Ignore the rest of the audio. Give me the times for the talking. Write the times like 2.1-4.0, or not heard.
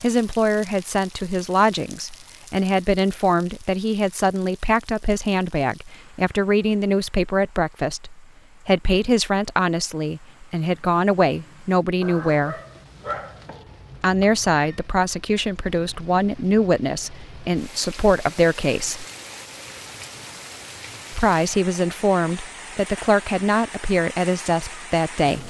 0.0-12.6, 14.0-19.1, 21.1-25.4.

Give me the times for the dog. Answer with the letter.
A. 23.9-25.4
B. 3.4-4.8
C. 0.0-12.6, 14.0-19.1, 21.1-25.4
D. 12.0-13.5
D.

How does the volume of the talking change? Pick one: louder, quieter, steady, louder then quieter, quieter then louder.
steady.